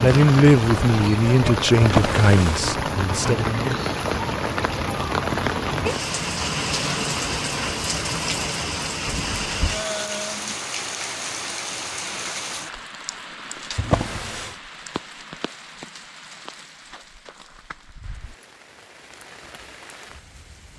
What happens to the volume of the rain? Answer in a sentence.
The loudness of the rain goes down.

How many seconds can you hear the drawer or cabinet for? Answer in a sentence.
You can hear the drawer or cabinet for 2 seconds altogether.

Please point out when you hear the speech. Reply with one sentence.
The speech can be heard from 0.0 to 3.5 s.